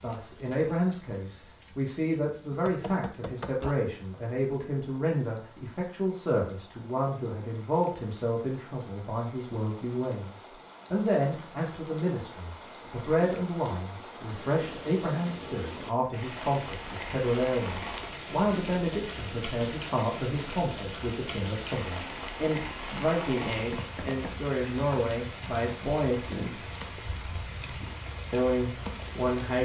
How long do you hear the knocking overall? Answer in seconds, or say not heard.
2 s.